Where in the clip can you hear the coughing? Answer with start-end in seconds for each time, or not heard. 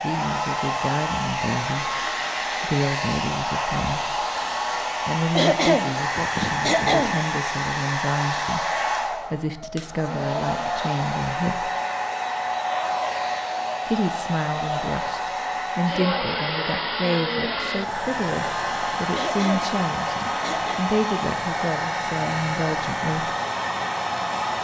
5.3-7.2, 19.1-20.9.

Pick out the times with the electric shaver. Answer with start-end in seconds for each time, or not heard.
not heard.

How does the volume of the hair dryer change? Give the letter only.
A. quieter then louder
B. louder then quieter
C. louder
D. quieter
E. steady
E.